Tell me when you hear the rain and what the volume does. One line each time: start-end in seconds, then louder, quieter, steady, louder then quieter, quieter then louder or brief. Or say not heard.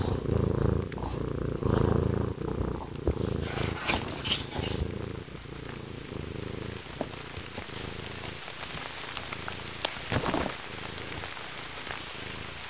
0.1-12.6 louder.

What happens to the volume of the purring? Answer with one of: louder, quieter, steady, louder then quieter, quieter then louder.
quieter.